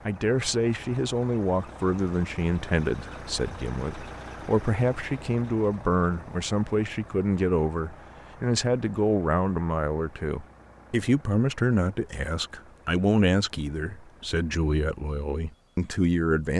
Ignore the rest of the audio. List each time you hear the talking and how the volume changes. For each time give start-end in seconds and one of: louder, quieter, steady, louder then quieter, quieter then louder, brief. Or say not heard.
0.1-16.5 steady.